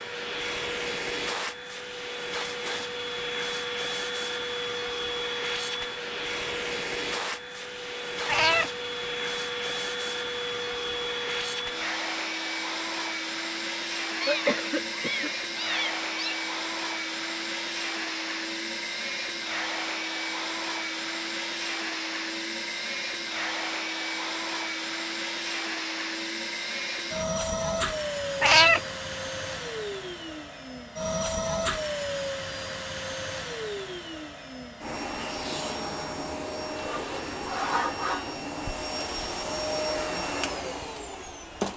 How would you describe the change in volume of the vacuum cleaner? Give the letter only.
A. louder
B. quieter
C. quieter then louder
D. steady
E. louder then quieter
D.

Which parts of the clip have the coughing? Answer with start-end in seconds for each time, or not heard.
14.2-15.3.